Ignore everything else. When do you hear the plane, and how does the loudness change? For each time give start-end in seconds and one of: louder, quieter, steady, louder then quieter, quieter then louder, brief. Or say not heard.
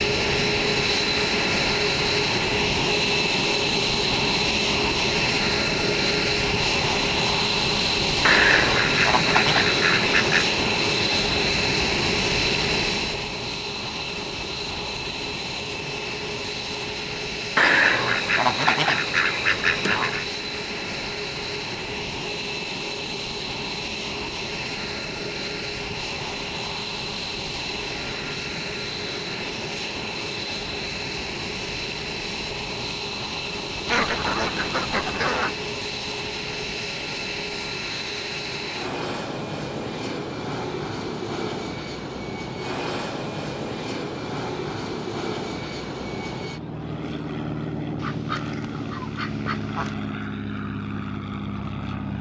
0.0-52.1 quieter.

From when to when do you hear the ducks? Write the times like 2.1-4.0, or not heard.
8.2-10.6, 17.6-20.2, 33.9-35.6, 48.0-50.0.